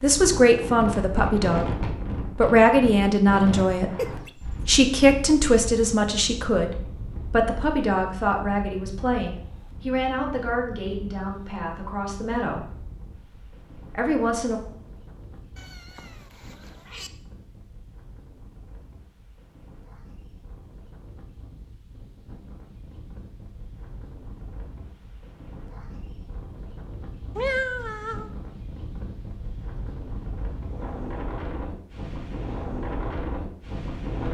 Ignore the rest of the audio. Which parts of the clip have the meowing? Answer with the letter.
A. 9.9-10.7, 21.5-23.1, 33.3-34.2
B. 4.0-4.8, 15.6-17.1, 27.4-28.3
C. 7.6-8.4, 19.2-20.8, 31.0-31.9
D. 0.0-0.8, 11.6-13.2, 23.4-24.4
B.